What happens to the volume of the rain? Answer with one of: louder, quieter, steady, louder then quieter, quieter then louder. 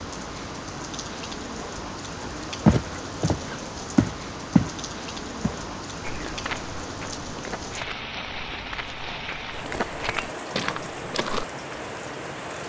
steady.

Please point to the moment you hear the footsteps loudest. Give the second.
3 s.